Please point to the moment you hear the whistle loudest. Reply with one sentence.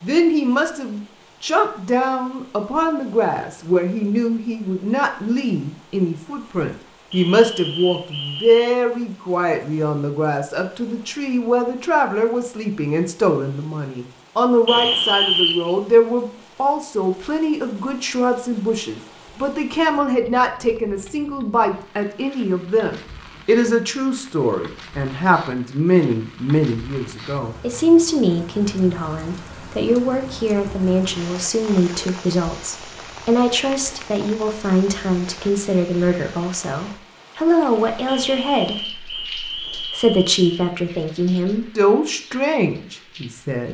The loudest moment of the whistle is at 15 seconds.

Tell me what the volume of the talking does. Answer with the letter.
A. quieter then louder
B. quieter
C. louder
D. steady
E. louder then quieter
D.